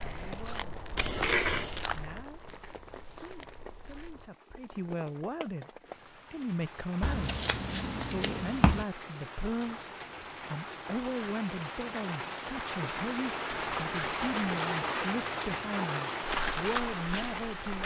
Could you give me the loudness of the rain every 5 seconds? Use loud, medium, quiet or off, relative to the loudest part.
quiet, medium, loud, loud.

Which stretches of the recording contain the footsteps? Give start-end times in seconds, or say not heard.
0.0-4.3, 16.2-17.8.